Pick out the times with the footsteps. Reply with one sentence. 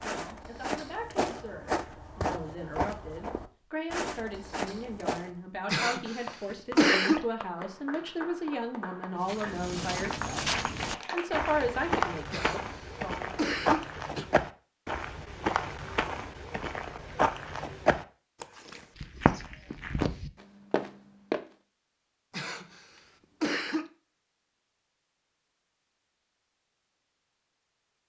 The footsteps can be heard from 0.0 to 5.3 s and from 9.2 to 21.4 s.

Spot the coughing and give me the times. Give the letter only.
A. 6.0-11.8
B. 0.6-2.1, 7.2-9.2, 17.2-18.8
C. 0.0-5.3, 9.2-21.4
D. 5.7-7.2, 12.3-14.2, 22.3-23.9
D.